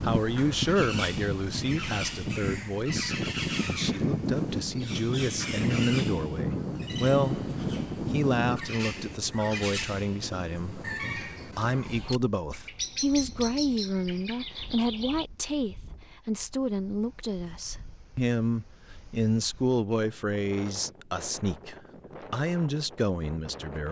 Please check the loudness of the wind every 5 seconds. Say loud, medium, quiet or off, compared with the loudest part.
loud, loud, quiet, quiet, quiet.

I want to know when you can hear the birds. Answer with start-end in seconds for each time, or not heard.
0.1-15.2.